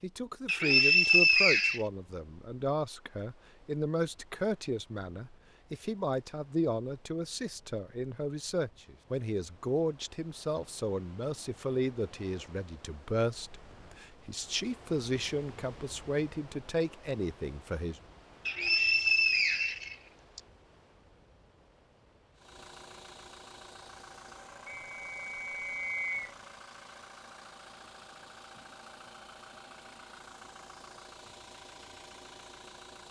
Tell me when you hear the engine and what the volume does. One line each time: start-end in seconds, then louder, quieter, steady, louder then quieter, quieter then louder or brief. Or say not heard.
22.4-33.0 steady.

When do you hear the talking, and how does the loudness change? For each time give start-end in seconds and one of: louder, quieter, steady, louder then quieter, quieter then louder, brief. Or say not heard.
0.0-18.0 steady.